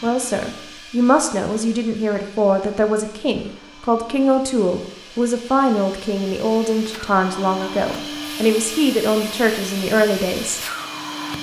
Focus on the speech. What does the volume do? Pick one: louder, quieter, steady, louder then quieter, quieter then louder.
steady.